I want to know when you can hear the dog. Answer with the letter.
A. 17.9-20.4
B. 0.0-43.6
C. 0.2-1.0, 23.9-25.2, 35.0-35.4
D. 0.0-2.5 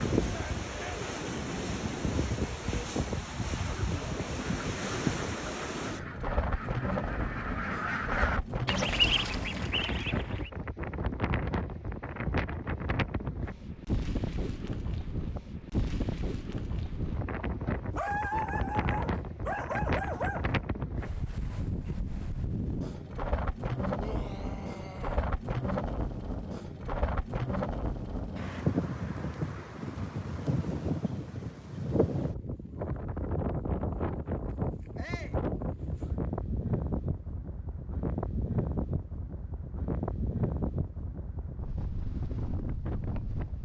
A.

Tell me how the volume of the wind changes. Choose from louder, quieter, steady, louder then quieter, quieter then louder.
steady.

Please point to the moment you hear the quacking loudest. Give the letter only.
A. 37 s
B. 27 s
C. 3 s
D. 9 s
D.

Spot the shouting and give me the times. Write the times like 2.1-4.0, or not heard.
0.2-1.0, 23.9-25.2, 35.0-35.4.